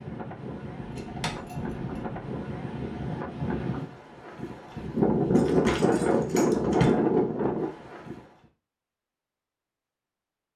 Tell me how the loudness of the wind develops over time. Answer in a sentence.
The loudness of the wind goes up.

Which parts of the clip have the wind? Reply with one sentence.
The wind can be heard from 0.0 to 8.2 s.